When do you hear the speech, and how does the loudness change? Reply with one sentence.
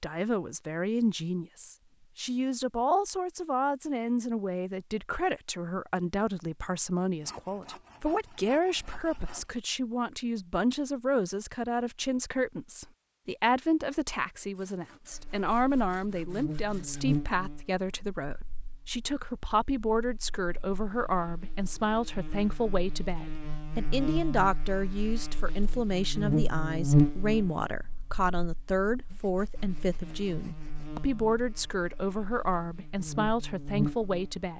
You can hear the speech from 0.0 to 34.5 s, at a steady volume.